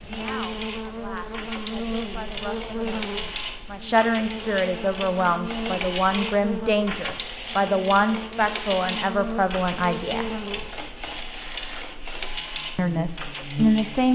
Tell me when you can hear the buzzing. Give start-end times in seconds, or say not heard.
0.0-14.0.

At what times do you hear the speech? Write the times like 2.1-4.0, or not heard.
0.1-10.3, 12.8-14.0.